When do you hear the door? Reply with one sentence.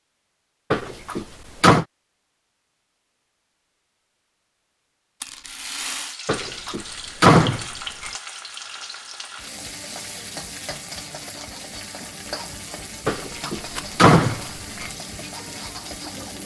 You can hear the door from 0.7 to 1.9 s, from 6.2 to 8.1 s and from 13.1 to 14.8 s.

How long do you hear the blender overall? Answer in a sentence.
You can't hear the blender here.